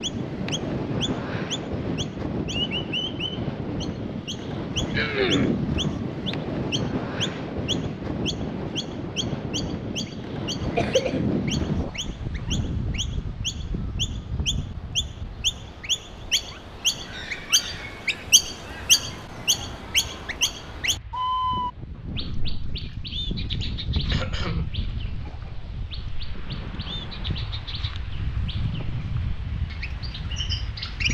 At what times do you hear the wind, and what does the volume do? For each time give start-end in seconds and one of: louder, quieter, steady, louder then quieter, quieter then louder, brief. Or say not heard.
0.0-31.0 quieter.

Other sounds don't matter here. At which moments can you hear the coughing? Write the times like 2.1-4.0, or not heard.
4.9-5.6, 10.8-11.3, 23.4-24.7.